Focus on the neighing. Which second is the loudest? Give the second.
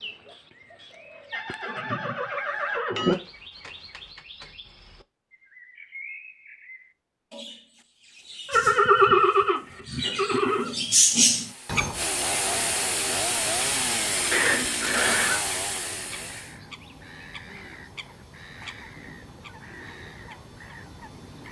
9 s.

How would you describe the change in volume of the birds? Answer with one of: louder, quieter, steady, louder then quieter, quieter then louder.
louder then quieter.